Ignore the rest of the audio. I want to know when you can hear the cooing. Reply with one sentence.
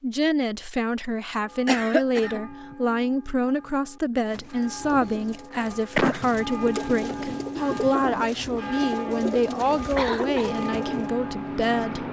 You can hear the cooing from 4.2 to 11.1 s.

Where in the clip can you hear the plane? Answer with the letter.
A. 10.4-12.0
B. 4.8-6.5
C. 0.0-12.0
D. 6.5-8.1
A.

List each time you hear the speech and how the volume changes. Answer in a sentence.
You can hear the speech from 0.0 to 12.0 s, at a steady volume.